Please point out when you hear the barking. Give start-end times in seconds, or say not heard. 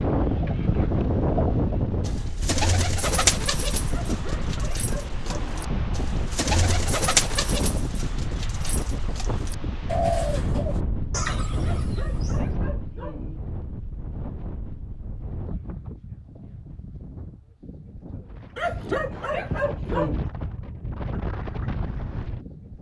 3.9-5.7, 11.6-13.4, 18.6-20.2.